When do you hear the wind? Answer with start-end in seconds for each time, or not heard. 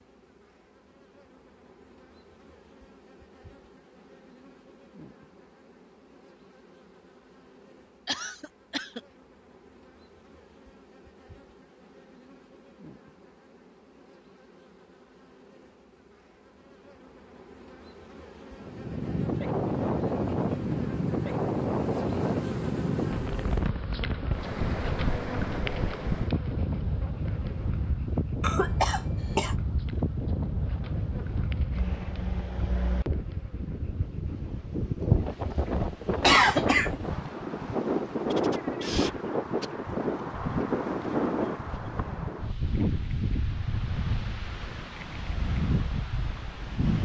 18.6-47.0.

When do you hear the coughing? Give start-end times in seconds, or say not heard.
8.1-9.0, 28.4-29.6, 36.2-37.0.